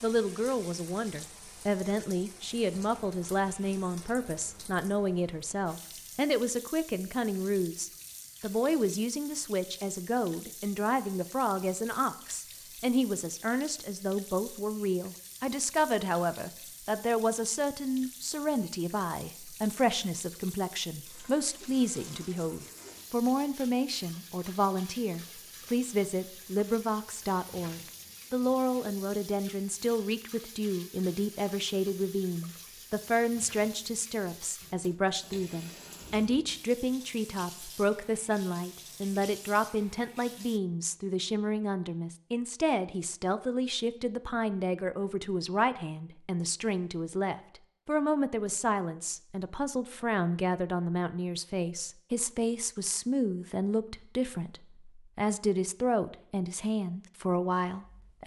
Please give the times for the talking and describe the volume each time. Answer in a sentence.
You can hear the talking from 0.0 to 58.2 s, at a steady volume.